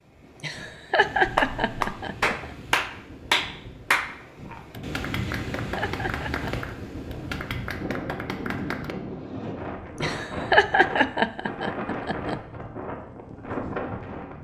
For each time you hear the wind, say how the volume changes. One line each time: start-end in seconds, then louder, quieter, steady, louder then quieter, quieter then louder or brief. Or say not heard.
0.0-14.4 louder.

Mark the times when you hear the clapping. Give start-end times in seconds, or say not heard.
1.2-8.9.